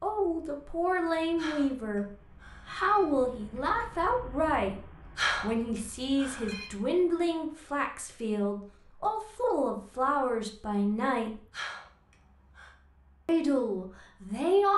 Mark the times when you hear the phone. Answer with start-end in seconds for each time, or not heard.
1.4-3.1, 5.2-6.7, 11.5-12.8.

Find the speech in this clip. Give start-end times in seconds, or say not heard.
0.0-11.4, 13.2-14.7.